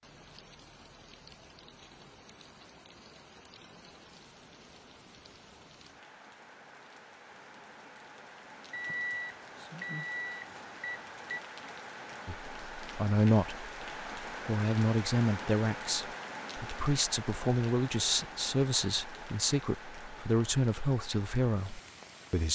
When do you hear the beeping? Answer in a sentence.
The beeping can be heard from 8.7 to 11.4 s.